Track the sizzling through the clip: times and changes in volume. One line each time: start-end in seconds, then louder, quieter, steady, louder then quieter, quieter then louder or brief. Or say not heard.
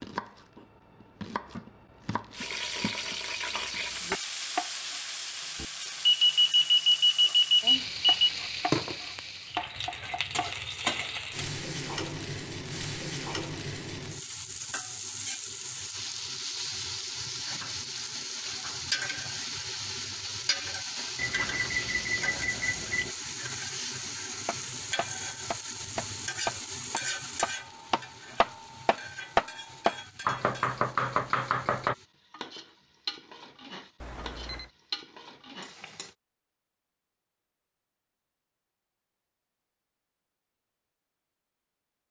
2.4-36.1 quieter.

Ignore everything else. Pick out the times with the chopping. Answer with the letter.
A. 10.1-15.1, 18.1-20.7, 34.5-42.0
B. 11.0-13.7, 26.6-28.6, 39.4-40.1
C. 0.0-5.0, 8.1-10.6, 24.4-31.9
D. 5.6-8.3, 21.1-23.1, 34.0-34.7
C.